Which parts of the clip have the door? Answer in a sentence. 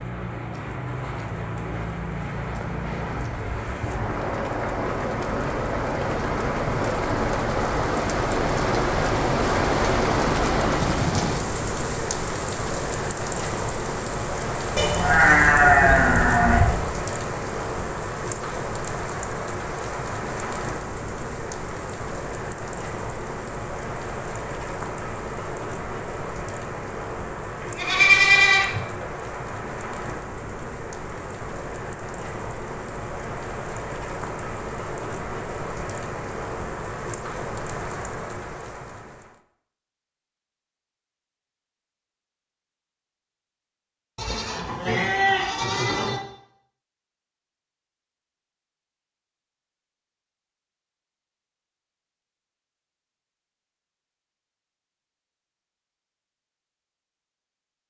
You can't hear the door here.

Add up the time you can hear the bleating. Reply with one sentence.
You can hear the bleating for 5 seconds altogether.